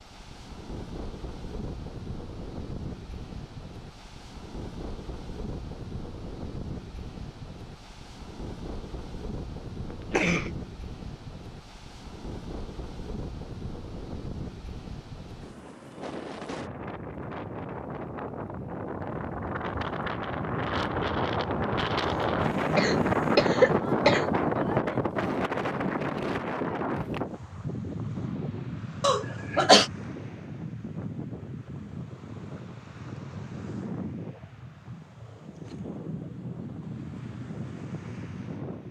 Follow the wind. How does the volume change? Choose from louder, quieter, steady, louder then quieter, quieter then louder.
louder then quieter.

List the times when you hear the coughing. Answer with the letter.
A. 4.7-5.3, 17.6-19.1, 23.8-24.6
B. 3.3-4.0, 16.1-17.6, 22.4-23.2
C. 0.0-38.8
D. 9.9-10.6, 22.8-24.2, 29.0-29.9
D.